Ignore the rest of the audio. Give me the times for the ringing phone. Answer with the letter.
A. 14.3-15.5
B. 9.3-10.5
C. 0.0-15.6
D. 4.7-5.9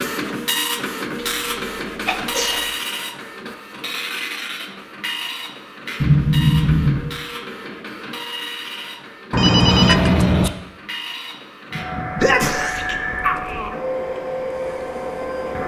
B.